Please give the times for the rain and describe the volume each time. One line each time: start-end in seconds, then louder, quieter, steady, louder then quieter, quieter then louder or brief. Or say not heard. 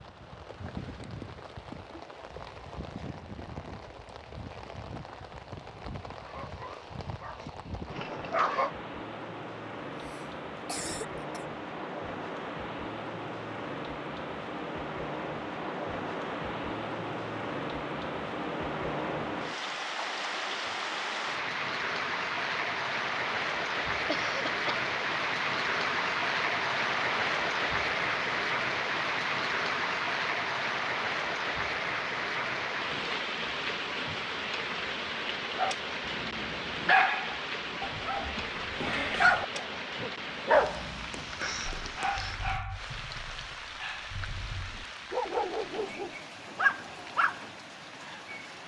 0.0-48.6 louder then quieter.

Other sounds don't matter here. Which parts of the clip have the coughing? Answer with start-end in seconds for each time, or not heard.
9.9-11.4, 24.1-24.9, 41.1-42.4.